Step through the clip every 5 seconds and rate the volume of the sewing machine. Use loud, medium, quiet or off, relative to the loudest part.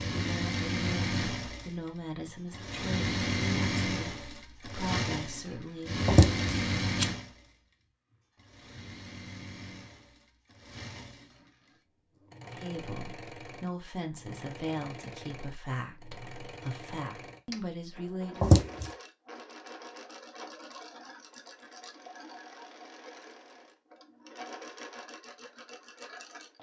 loud, loud, quiet, quiet, quiet, quiet.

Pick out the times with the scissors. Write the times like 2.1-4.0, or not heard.
6.0-7.0, 18.4-18.9.